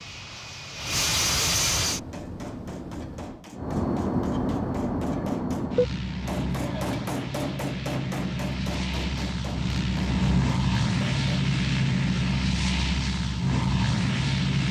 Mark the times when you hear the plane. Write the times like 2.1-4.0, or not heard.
0.0-14.6.